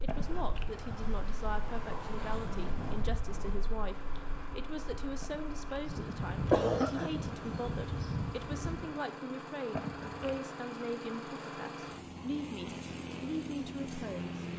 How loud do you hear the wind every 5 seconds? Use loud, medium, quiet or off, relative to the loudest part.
medium, loud, off.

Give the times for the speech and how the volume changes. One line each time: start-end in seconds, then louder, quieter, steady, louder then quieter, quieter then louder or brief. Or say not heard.
0.0-14.3 steady.